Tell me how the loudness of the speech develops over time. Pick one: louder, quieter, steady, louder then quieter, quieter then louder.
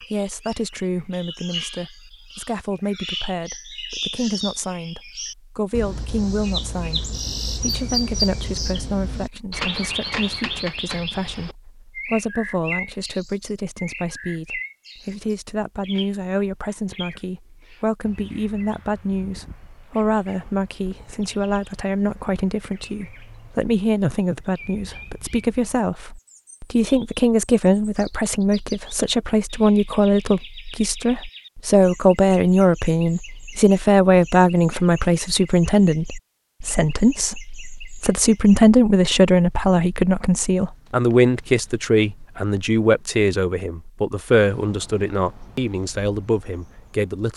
louder.